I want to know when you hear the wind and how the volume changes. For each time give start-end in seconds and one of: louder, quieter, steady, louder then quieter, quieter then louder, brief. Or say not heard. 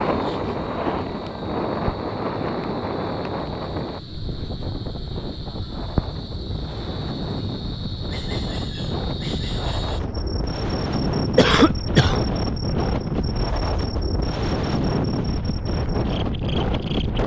0.0-17.2 quieter then louder.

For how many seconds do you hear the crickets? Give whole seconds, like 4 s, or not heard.
17 s.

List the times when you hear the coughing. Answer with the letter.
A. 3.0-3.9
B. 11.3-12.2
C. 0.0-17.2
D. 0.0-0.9
B.